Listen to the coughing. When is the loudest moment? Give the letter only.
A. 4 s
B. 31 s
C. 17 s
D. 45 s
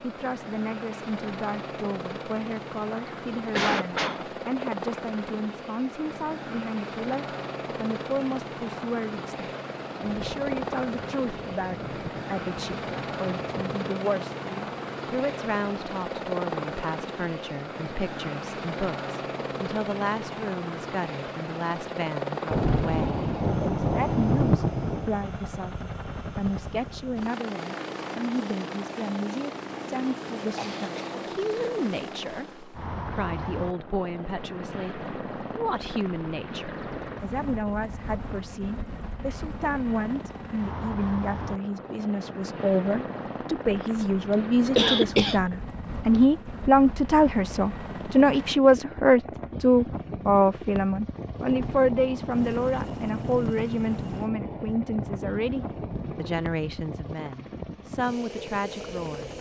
D.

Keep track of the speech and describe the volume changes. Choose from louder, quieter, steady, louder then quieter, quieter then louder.
louder.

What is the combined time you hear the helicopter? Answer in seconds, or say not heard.
59 s.